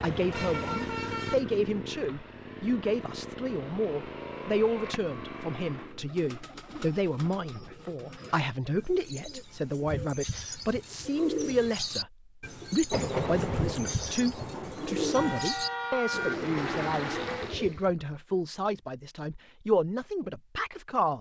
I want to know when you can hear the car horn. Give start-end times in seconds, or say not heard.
0.3-1.4, 15.2-16.4.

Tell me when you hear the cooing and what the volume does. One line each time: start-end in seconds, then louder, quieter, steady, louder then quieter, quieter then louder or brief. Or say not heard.
5.7-17.9 louder.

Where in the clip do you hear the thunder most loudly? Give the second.
13 s.